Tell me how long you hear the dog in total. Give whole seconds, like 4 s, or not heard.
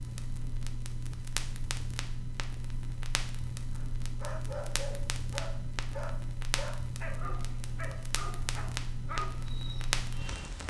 7 s.